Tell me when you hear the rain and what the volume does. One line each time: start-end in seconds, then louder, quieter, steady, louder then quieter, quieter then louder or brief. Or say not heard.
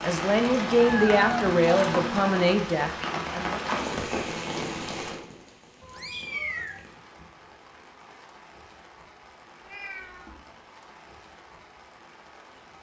0.0-12.7 quieter.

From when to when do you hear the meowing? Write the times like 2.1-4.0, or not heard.
0.5-2.2, 5.8-6.8, 9.6-10.3.